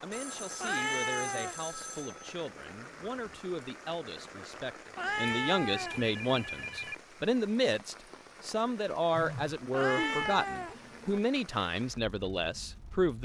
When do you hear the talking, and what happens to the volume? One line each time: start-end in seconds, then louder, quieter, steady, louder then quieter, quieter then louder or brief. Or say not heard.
0.0-13.2 louder.